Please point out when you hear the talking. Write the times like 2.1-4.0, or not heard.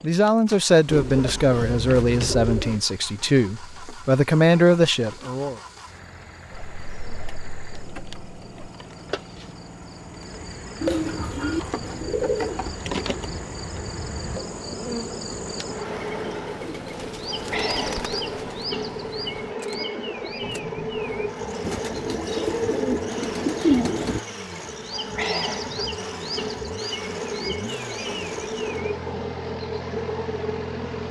0.0-5.5.